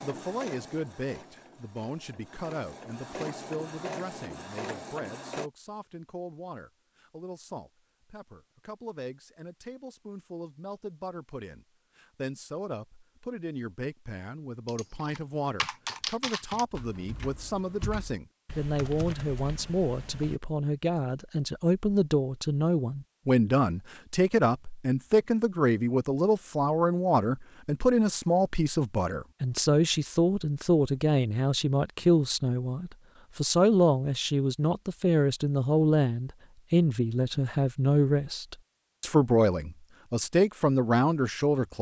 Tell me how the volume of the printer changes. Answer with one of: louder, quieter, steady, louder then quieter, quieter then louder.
quieter then louder.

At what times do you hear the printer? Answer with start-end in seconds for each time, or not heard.
0.0-5.5.